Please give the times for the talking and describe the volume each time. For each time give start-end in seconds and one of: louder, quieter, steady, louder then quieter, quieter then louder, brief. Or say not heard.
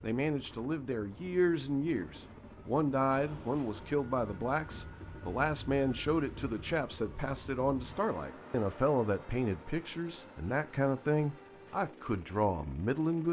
0.0-13.2 steady.